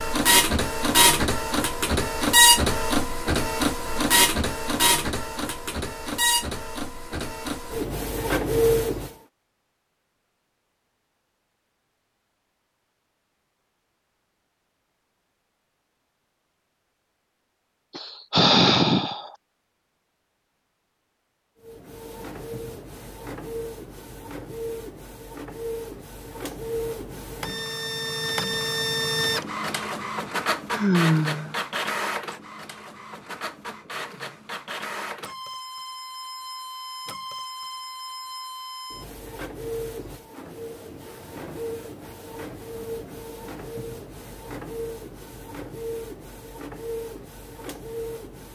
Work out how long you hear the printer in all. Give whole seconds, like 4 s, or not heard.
36 s.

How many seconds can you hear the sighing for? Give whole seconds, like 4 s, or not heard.
2 s.